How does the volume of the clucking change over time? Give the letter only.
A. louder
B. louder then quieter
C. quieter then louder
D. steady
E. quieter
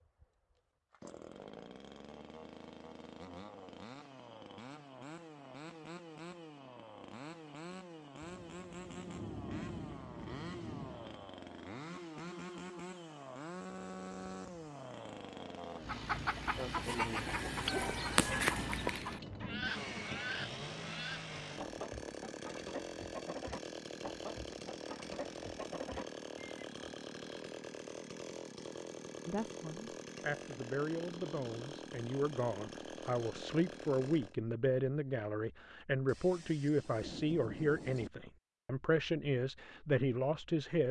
E.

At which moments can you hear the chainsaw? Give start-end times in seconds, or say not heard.
0.0-34.4.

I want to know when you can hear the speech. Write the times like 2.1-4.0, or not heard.
29.2-40.8.